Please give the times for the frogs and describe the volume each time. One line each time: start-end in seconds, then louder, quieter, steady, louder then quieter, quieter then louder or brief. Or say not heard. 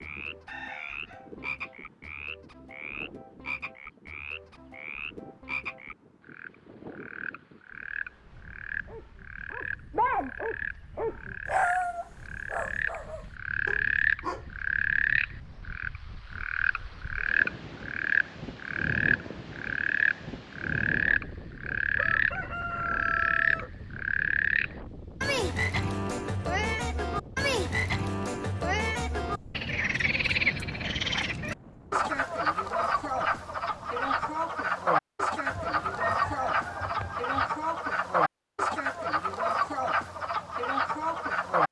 0.0-41.6 louder.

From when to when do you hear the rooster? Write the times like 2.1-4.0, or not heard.
0.5-1.7, 21.9-23.7, 35.5-37.5.